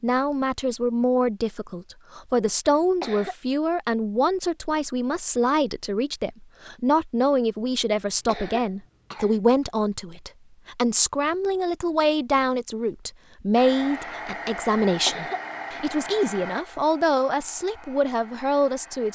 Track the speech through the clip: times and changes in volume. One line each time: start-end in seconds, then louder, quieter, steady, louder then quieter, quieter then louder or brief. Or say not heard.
0.0-19.1 steady.